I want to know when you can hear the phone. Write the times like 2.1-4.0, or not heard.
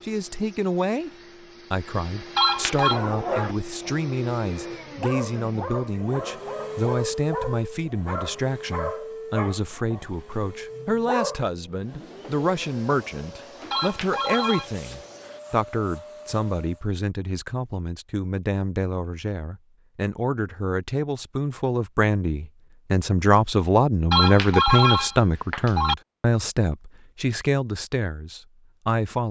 2.4-3.0, 13.7-14.7, 24.1-25.9.